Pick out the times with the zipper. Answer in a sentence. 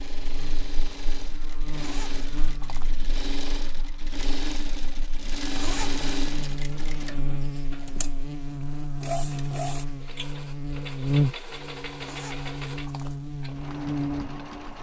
You can hear the zipper from 1.8 to 3.0 s, from 5.5 to 6.0 s and from 12.0 to 13.2 s.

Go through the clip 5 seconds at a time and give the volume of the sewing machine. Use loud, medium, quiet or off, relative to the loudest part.
loud, loud, medium.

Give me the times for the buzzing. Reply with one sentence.
The buzzing can be heard from 0.1 to 14.7 s.